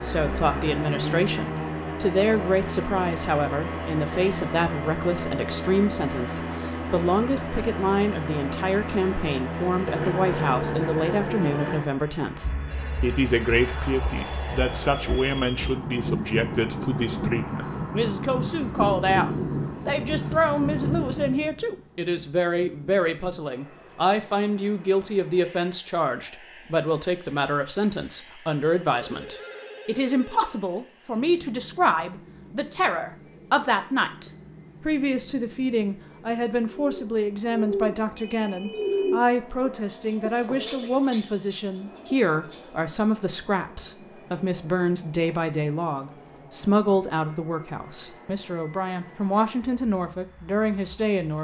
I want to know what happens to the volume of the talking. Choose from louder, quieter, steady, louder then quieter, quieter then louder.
steady.